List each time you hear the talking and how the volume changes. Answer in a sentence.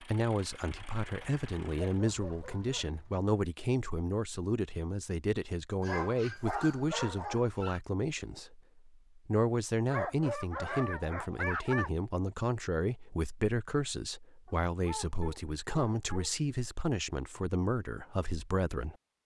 The talking can be heard from 0.0 to 19.2 s, at a steady volume.